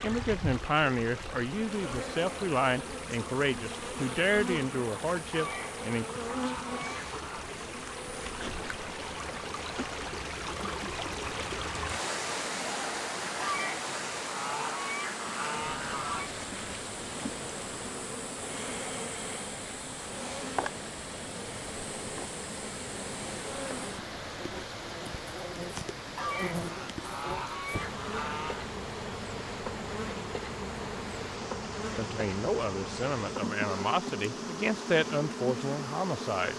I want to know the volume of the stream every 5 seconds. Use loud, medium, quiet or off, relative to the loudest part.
medium, medium, loud, medium, medium, medium, medium, medium.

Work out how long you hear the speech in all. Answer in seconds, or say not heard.
11 s.